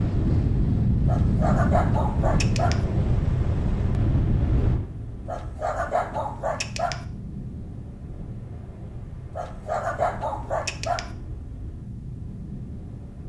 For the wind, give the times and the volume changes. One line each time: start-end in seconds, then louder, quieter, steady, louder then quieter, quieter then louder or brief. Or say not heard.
0.0-13.2 quieter.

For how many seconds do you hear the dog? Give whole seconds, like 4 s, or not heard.
5 s.